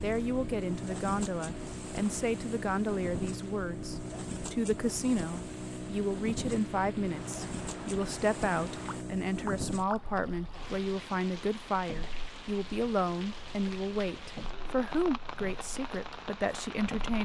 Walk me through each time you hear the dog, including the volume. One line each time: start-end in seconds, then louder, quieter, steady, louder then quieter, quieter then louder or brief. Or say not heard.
not heard.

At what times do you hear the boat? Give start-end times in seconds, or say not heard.
0.0-17.2.